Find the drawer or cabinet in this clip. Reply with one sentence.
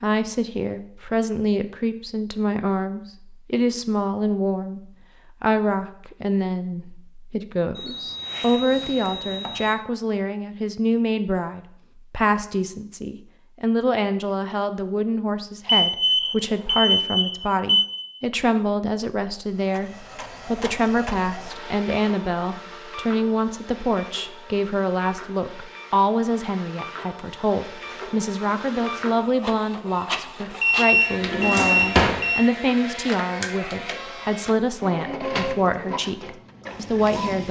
You can hear the drawer or cabinet from 31.2 to 32.2 s.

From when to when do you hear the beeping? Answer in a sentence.
You can hear the beeping from 7.8 to 9.8 s, from 15.7 to 18.0 s and from 30.6 to 32.4 s.